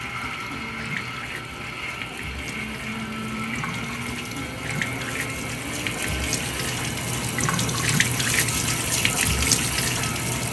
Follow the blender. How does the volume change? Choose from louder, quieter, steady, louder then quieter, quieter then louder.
steady.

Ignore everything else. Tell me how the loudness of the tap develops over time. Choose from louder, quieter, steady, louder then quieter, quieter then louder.
louder.